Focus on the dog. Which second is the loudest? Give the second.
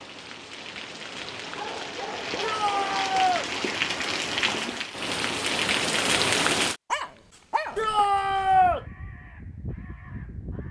7 s.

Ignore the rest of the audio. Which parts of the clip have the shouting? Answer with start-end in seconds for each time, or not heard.
2.4-3.5, 7.8-8.8.